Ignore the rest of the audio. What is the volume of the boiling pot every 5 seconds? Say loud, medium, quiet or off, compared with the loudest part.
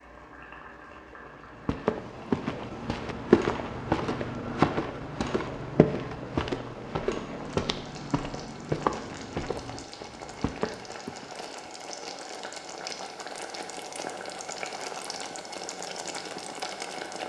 medium, medium, loud, loud.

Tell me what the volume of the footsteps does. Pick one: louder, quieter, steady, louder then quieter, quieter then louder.
quieter.